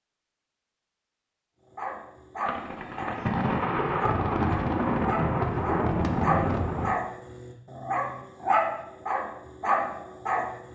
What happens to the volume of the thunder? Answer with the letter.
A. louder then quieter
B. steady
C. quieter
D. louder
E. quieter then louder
B.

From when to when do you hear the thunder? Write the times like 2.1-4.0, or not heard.
2.5-7.0.